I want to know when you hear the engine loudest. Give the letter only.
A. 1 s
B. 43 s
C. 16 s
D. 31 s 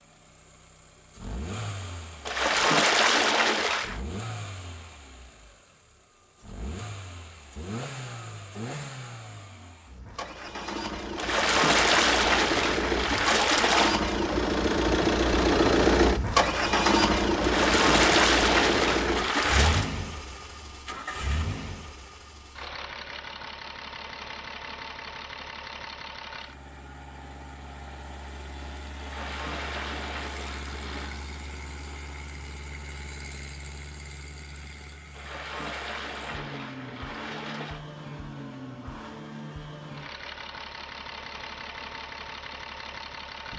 C.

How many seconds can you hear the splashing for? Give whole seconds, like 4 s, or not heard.
12 s.